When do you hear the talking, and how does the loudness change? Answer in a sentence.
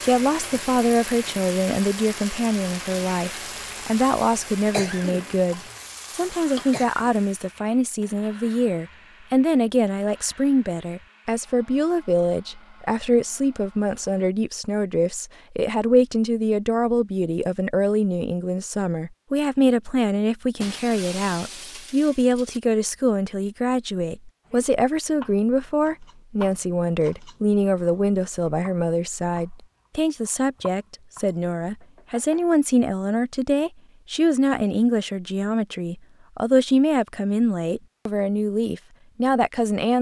You can hear the talking from 0.0 to 39.9 s, at a steady volume.